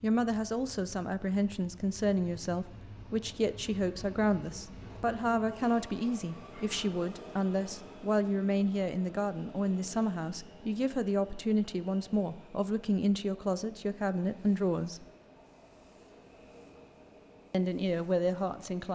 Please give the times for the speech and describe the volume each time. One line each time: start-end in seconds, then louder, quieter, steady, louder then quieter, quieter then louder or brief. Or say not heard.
0.0-15.1 steady
17.5-18.9 brief.